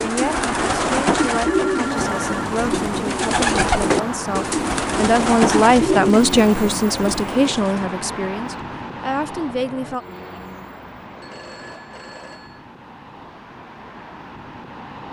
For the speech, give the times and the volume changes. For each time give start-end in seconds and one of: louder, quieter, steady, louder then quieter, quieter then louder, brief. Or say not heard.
0.0-10.1 louder then quieter.